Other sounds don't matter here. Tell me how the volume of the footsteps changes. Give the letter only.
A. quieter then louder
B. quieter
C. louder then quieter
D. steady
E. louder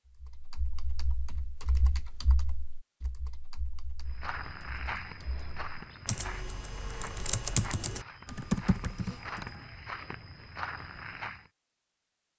A.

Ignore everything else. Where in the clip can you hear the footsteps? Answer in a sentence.
The footsteps can be heard from 4.0 to 11.5 s.